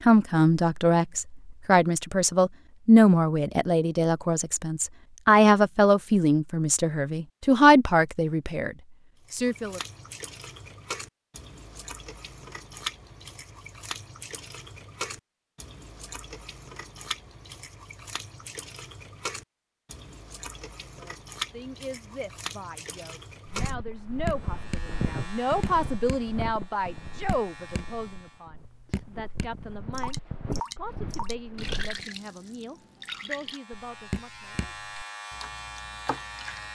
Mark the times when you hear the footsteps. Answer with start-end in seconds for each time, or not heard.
23.4-32.0.